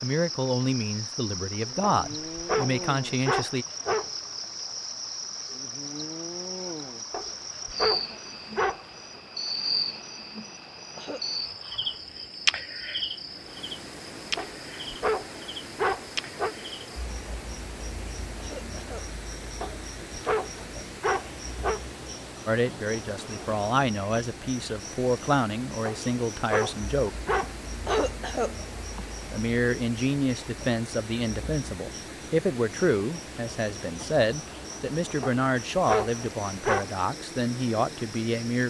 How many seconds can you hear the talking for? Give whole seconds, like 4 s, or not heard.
18 s.